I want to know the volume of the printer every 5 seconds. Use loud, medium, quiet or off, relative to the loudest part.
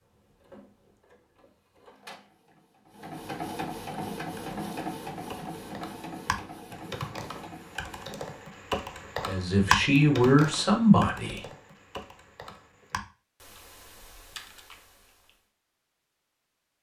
loud, loud, off, off.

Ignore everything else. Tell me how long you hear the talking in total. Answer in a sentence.
The talking can be heard for 2 seconds in total.